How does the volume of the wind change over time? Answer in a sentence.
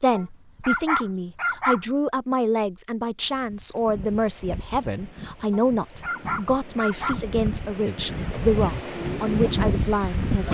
The loudness of the wind goes up.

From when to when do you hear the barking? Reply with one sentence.
You can hear the barking from 0.1 to 1.8 s and from 5.5 to 7.2 s.